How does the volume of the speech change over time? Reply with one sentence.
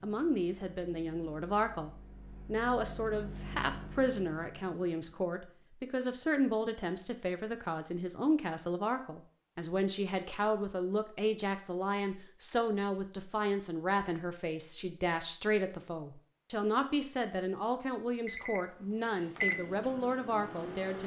The loudness of the speech stays about the same.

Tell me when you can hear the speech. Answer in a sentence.
You can hear the speech from 0.0 to 21.0 s.